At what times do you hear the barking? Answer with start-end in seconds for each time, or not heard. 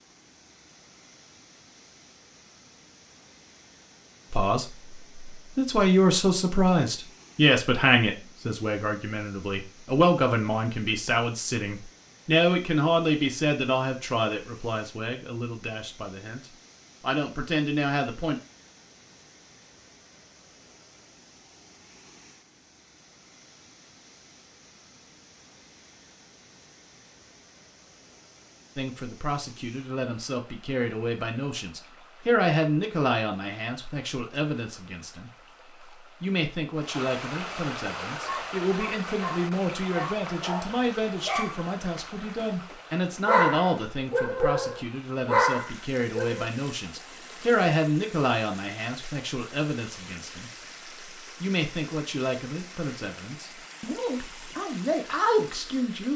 38.2-46.5.